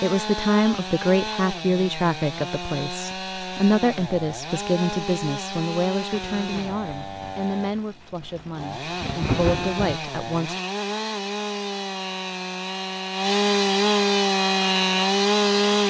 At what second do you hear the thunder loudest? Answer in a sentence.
The volume of the thunder peaks at 9 seconds.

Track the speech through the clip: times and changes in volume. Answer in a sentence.
You can hear the speech from 0.0 to 10.6 s, getting quieter.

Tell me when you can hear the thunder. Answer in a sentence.
You can hear the thunder from 6.1 to 9.9 s.